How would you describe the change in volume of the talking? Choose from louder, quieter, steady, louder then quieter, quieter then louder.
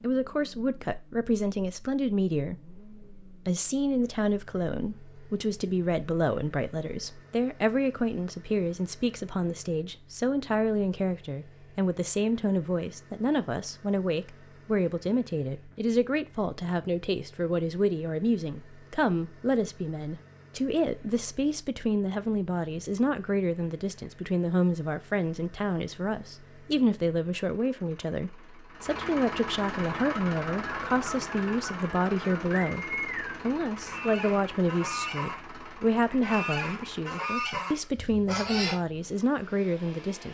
steady.